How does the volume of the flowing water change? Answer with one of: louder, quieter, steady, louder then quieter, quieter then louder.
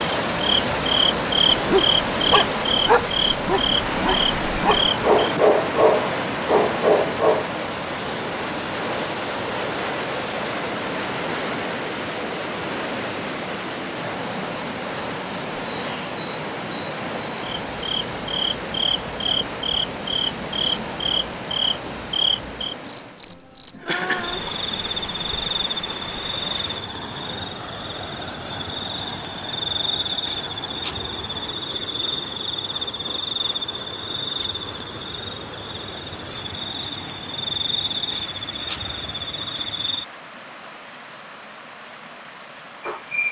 quieter.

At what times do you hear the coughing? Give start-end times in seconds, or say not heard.
23.8-24.4.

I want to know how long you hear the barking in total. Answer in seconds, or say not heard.
6 s.